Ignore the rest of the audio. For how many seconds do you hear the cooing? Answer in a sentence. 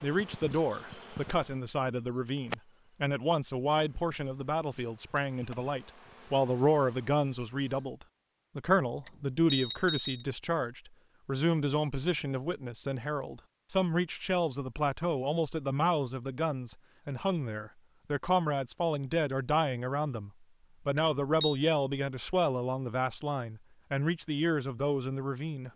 You can't hear the cooing here.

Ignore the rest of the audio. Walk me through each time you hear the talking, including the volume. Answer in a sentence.
You can hear the talking from 0.0 to 25.7 s, at a steady volume.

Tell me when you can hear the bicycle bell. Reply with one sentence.
You can hear the bicycle bell from 9.1 to 10.2 s and from 20.9 to 21.6 s.